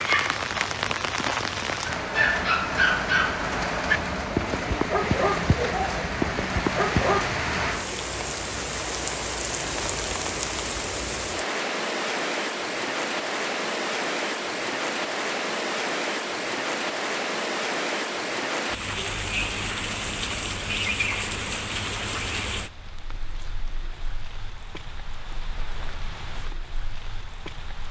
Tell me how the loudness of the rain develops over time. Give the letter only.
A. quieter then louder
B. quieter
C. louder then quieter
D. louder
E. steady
B.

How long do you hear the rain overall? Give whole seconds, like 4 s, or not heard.
28 s.